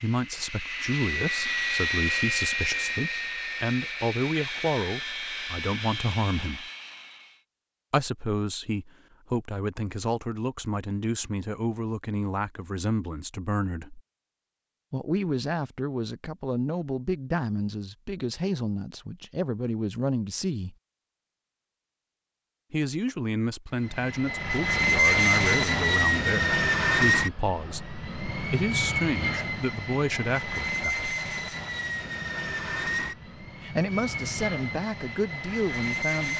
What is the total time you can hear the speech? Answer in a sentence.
The speech can be heard for 30 seconds in total.